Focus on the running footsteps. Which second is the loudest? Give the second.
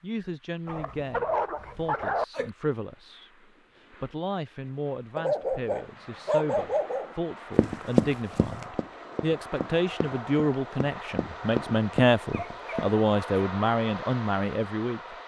8 s.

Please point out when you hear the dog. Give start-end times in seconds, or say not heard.
0.7-2.5, 5.2-7.2, 12.3-13.4.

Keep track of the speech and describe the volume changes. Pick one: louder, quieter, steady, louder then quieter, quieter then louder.
louder.